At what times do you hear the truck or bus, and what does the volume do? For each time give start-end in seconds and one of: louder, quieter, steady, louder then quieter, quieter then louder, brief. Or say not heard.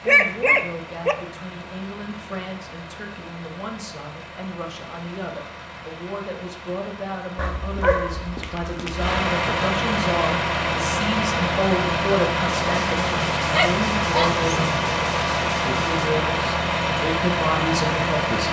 0.0-18.4 louder.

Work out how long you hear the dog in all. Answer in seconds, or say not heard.
4 s.